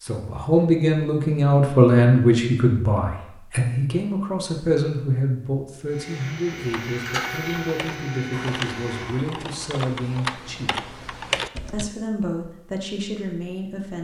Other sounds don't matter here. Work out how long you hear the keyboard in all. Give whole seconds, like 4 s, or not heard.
5 s.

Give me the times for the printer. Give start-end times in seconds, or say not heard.
5.8-9.2.